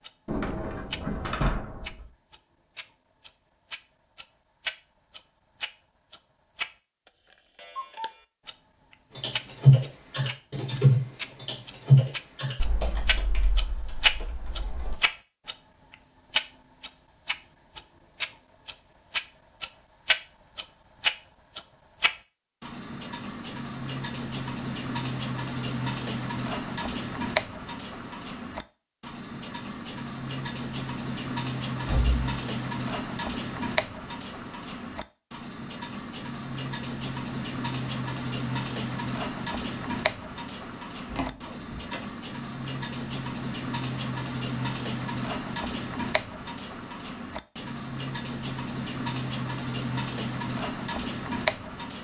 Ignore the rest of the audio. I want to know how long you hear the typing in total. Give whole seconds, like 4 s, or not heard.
6 s.